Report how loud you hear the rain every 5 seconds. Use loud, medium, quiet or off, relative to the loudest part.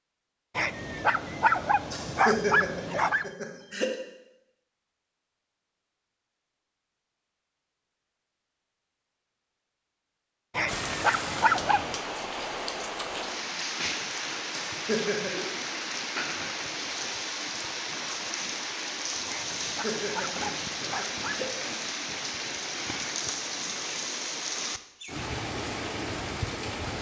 off, off, loud, loud, loud, loud.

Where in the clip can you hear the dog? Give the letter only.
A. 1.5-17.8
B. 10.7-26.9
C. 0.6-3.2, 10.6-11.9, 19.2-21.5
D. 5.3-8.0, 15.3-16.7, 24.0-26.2
C.